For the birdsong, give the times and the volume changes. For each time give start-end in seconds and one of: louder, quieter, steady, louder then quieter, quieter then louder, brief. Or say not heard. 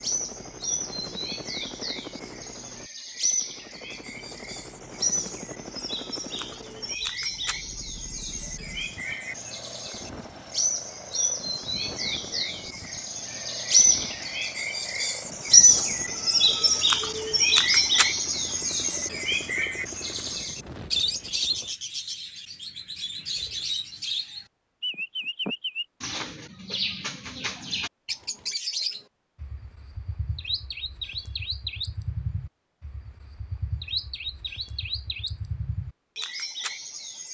0.0-37.2 louder then quieter.